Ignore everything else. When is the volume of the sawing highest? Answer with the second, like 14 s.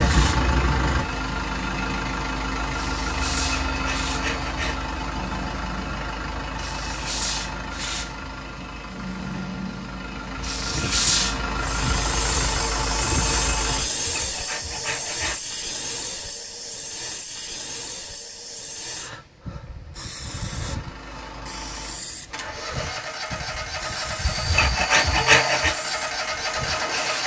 25 s.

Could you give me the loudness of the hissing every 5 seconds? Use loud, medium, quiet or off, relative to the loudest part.
medium, medium, loud, medium, medium, medium.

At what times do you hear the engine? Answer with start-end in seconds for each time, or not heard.
0.0-13.8, 20.2-27.2.